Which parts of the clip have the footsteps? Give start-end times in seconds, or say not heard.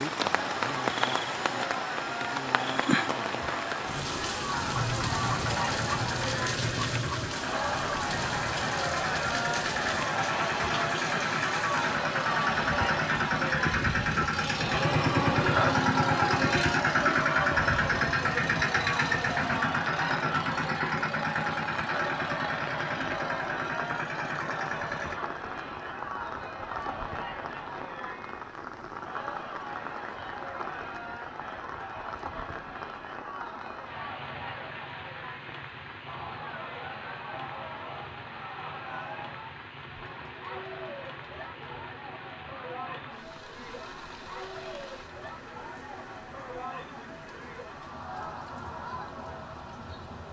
not heard.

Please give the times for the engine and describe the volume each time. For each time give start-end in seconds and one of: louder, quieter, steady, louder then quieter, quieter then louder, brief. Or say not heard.
4.5-25.1 louder then quieter.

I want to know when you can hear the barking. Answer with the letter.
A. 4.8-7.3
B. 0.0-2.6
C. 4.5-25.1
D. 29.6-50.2
A.